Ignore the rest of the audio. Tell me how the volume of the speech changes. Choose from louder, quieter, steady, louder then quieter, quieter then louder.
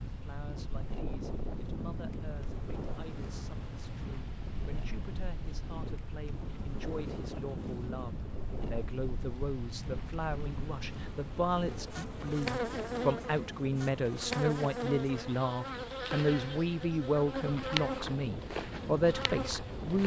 louder.